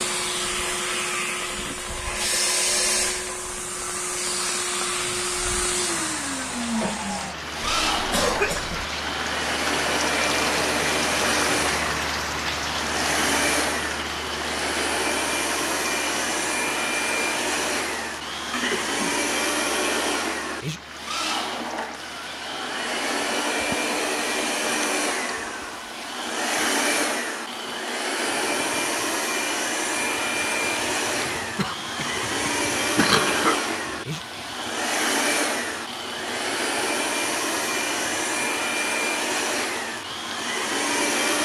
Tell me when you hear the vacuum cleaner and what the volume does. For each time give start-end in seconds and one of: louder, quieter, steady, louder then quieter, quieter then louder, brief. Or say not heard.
0.0-41.3 steady.